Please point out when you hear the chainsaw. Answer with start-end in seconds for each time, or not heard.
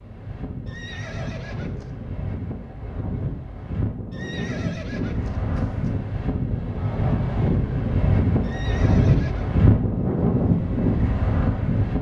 not heard.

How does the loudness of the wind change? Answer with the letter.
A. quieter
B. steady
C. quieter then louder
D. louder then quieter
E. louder
E.